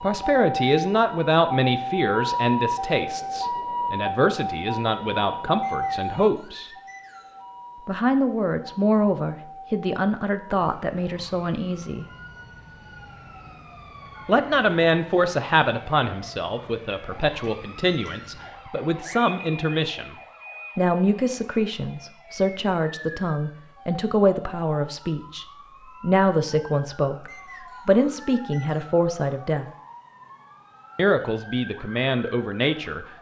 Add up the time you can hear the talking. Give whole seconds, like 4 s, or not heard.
28 s.